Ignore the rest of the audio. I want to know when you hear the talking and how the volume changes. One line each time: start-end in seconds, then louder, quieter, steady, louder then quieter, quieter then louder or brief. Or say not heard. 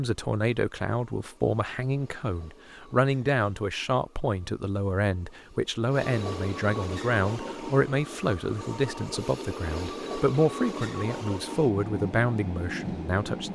0.0-13.5 steady.